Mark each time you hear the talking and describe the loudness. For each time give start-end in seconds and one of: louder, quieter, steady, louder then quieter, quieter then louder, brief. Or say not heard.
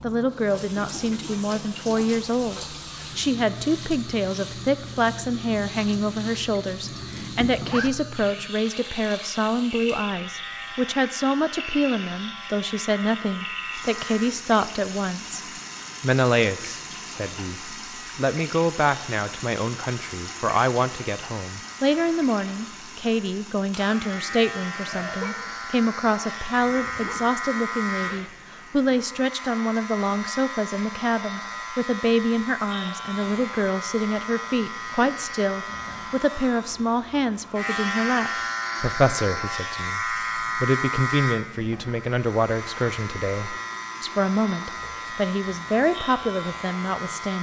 0.0-15.4 steady
16.0-47.3 steady.